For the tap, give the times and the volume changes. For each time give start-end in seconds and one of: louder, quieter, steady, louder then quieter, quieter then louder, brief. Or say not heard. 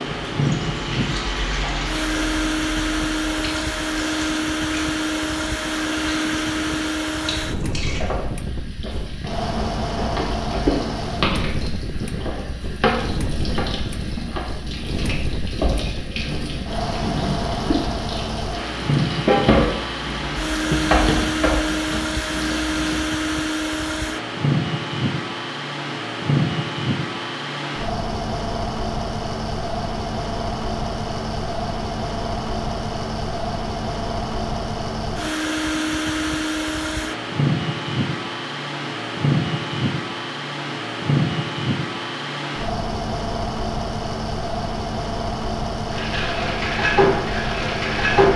0.0-23.0 louder
45.9-48.3 brief.